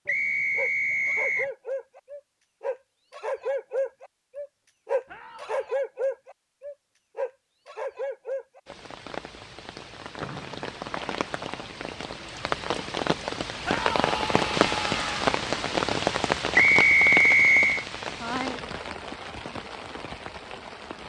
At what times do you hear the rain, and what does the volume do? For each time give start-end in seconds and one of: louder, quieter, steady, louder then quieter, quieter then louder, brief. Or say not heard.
8.7-21.0 louder then quieter.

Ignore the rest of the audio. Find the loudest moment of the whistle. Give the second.
17 s.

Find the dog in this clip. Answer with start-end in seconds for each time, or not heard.
0.1-8.8.